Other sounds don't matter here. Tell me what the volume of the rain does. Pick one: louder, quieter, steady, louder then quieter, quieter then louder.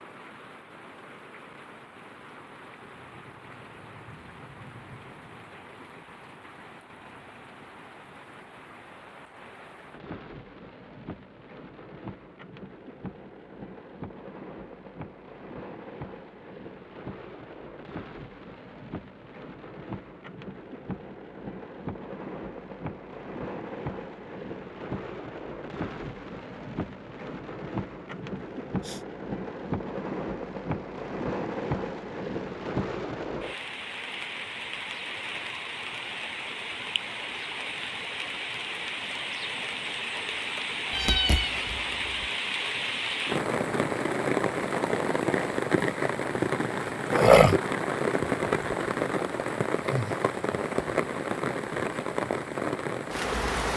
louder.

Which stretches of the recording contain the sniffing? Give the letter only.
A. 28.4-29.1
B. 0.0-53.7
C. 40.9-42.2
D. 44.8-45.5
A.